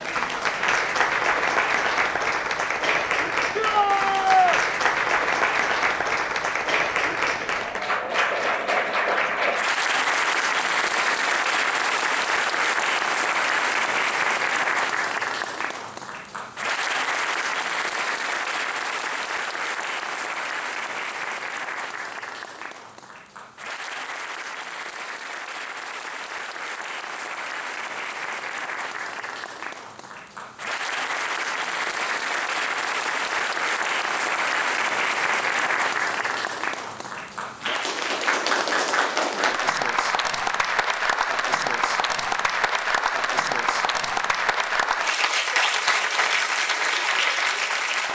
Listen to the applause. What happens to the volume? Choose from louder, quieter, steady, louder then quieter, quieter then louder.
quieter then louder.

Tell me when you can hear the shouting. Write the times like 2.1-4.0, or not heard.
3.5-4.6.